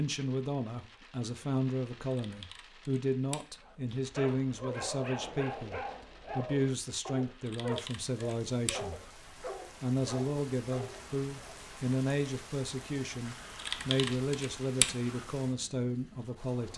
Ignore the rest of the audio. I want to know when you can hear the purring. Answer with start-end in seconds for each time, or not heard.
not heard.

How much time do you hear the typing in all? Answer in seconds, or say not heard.
6 s.